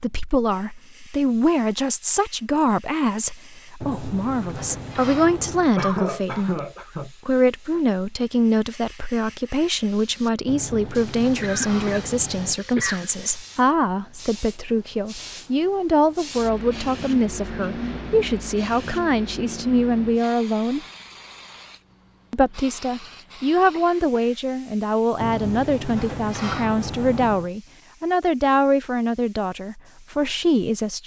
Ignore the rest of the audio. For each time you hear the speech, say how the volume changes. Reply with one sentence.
You can hear the speech from 0.0 to 20.8 s, at a steady volume; and from 22.3 to 31.0 s, at a steady volume.